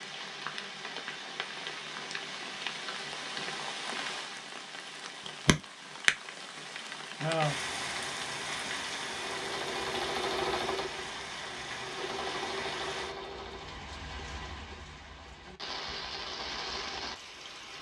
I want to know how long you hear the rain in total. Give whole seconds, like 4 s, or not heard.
18 s.